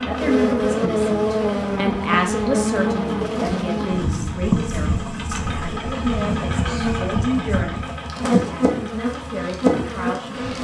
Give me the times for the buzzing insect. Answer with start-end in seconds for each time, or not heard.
0.0-10.6.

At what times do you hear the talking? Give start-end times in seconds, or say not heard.
0.1-10.3.